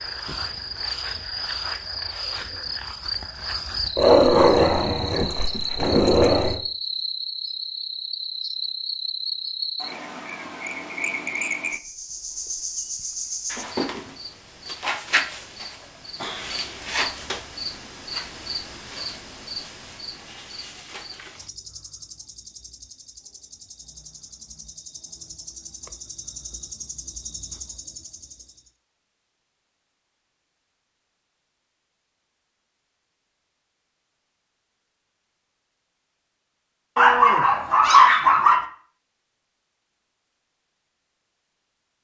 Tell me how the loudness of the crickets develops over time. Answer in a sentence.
The volume of the crickets goes down.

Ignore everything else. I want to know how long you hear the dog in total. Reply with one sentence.
You can hear the dog for 4 seconds altogether.